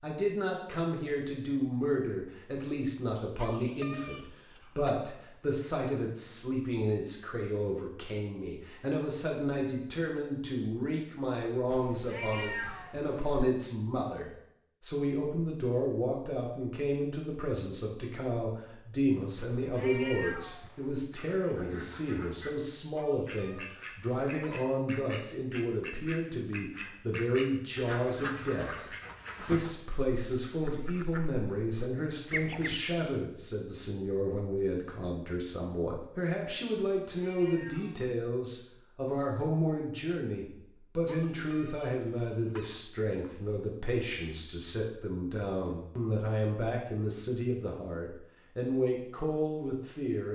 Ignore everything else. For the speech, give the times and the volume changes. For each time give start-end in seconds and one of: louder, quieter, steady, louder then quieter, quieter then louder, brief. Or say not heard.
0.0-50.3 steady.